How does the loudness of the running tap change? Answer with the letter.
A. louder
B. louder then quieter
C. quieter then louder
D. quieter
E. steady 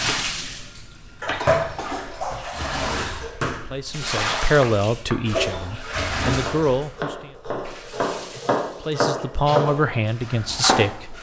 D.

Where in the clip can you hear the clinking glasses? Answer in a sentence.
You can't hear the clinking glasses here.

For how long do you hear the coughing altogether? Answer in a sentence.
You can hear the coughing for 2 seconds altogether.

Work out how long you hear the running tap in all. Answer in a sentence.
The running tap can be heard for 11 seconds in total.